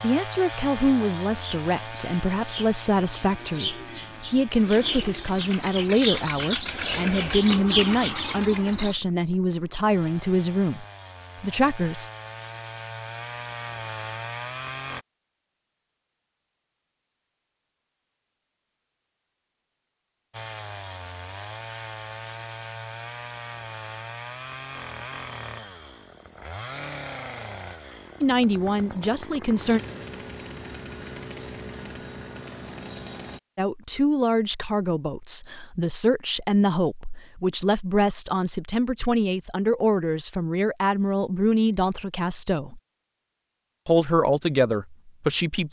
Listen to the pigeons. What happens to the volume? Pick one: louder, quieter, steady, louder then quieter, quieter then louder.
louder.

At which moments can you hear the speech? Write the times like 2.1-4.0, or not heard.
0.0-12.1, 28.2-29.8, 33.5-42.8, 43.9-45.6.